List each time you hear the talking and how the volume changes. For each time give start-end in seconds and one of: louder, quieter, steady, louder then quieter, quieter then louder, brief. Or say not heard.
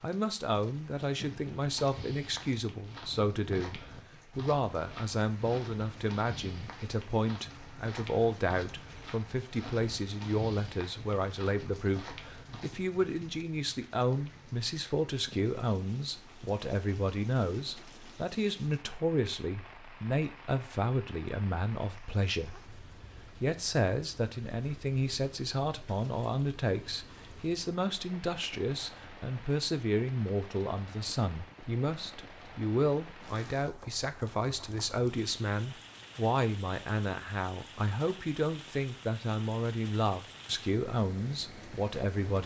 0.0-42.4 steady.